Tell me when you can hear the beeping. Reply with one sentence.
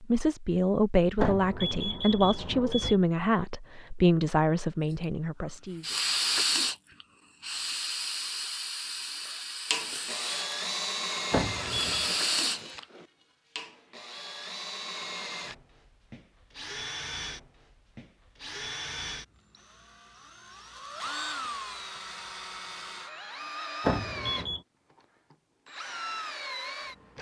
The beeping can be heard from 1.2 to 3.0 s, from 11.3 to 12.2 s and from 23.9 to 24.6 s.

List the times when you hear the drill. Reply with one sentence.
The drill can be heard from 9.7 to 27.1 s.